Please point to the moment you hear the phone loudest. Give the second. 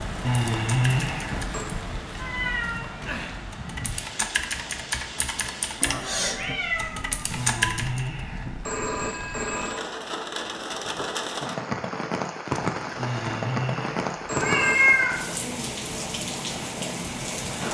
1 s.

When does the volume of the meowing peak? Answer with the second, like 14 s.
15 s.